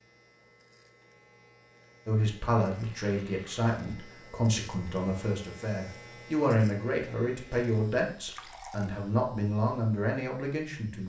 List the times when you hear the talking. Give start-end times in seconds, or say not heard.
2.0-11.0.